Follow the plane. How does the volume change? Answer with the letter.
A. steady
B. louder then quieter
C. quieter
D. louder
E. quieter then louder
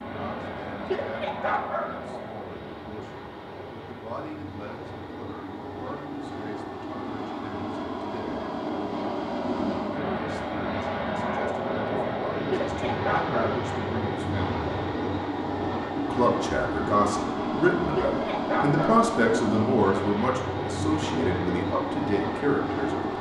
D.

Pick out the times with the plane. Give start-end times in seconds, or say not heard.
0.0-23.1.